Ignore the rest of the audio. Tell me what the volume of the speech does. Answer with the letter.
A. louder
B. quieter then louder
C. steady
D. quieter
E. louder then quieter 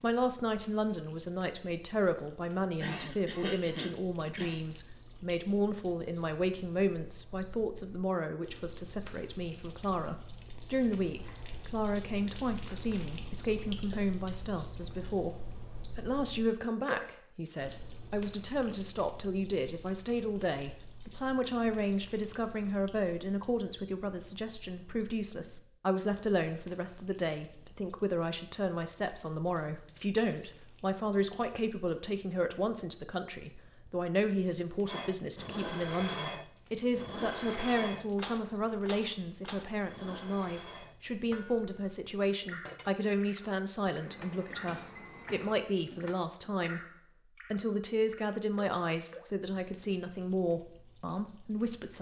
C.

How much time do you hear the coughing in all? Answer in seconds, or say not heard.
2 s.